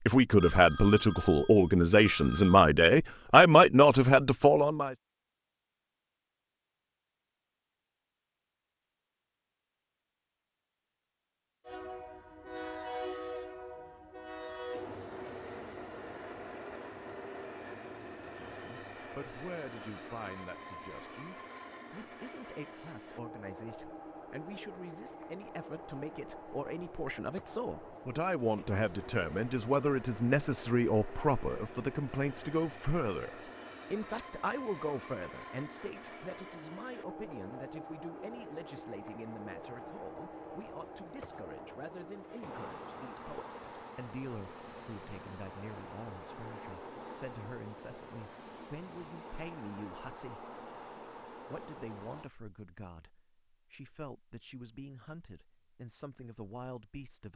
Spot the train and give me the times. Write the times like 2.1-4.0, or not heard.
11.7-52.3.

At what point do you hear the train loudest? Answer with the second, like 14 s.
13 s.